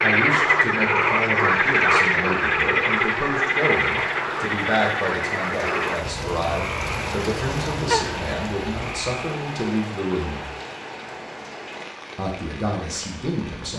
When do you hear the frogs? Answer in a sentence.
You can hear the frogs from 0.0 to 9.2 s.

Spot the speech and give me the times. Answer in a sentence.
You can hear the speech from 0.0 to 10.4 s and from 12.2 to 13.7 s.